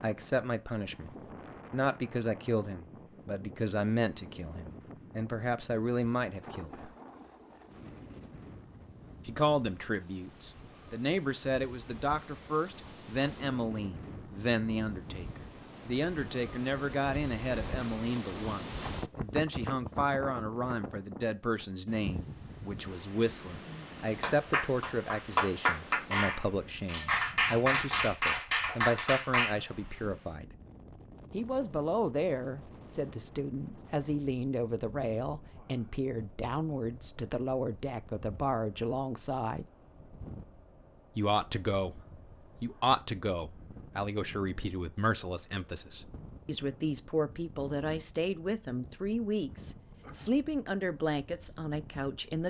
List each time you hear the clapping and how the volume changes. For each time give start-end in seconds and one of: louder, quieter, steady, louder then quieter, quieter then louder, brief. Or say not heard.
24.1-29.6 steady.